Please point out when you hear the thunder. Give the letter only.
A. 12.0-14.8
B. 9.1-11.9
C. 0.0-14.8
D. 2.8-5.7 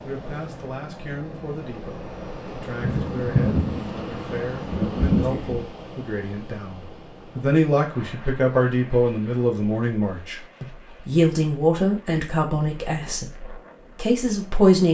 D.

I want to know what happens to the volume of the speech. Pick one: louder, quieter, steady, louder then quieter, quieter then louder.
louder.